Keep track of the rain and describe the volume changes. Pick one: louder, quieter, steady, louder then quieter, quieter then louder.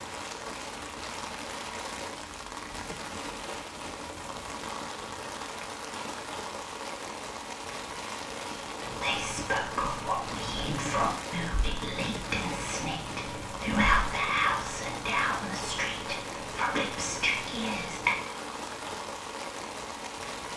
steady.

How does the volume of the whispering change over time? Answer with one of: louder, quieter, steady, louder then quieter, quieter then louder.
steady.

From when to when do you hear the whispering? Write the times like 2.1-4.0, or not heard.
8.8-18.1.